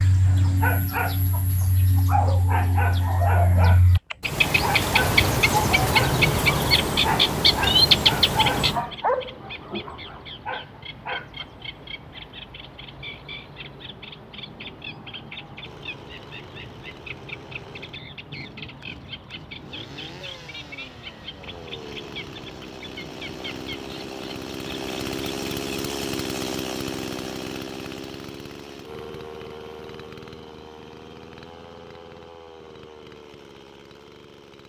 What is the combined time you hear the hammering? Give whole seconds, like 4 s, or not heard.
not heard.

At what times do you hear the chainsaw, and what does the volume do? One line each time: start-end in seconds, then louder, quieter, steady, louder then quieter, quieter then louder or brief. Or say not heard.
15.6-34.6 louder then quieter.